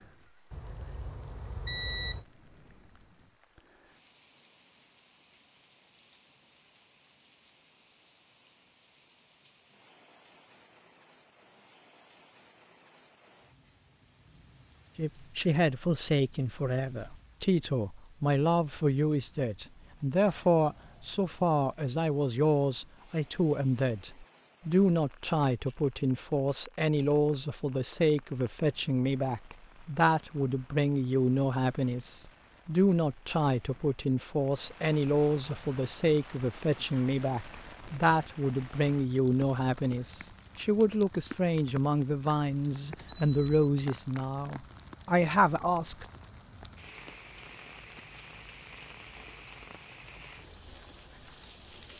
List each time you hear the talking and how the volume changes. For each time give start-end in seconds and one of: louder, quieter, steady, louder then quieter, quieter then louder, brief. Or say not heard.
14.9-46.0 steady.